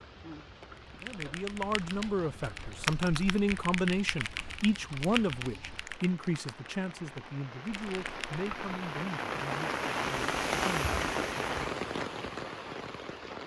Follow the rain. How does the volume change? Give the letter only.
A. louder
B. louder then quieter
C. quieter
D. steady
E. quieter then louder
A.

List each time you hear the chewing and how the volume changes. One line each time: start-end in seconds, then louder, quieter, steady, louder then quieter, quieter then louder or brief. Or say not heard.
not heard.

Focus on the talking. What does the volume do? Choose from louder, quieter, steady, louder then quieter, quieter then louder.
quieter.